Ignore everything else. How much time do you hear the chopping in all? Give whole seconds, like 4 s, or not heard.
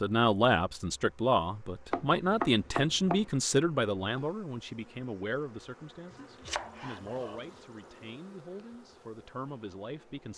3 s.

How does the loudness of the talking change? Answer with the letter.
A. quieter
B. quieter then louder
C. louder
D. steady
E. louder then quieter
A.